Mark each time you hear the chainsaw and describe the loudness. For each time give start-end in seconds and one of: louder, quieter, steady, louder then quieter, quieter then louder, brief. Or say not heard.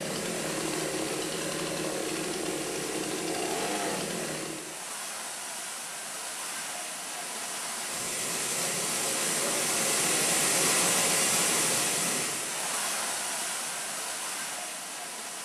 0.0-4.8 steady.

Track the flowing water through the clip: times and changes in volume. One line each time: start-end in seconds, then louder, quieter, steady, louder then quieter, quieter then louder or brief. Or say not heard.
0.0-15.4 louder then quieter.